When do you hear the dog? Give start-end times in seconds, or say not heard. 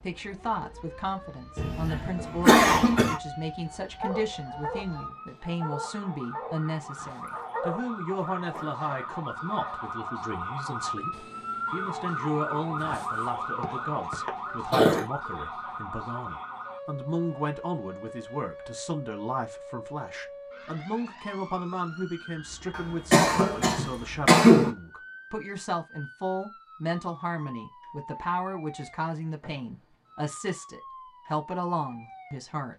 3.7-9.8.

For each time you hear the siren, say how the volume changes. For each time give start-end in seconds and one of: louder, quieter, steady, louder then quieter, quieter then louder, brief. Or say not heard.
0.0-32.5 louder then quieter.